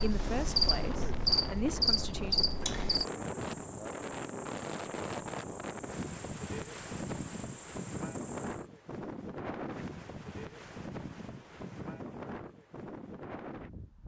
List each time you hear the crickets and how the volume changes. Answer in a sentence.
You can hear the crickets from 0.0 to 8.7 s, getting quieter.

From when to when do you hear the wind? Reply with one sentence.
The wind can be heard from 0.0 to 14.0 s.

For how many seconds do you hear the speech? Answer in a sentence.
The speech can be heard for 3 seconds in total.